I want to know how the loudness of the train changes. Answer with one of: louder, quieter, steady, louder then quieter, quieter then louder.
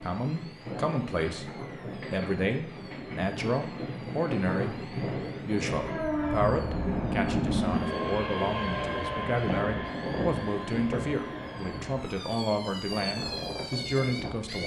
louder then quieter.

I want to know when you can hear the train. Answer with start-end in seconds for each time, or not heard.
0.0-14.6.